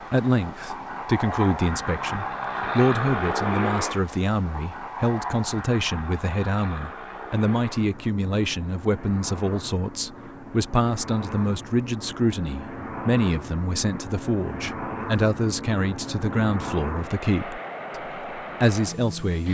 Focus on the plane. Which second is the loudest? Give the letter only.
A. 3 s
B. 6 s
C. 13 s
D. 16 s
A.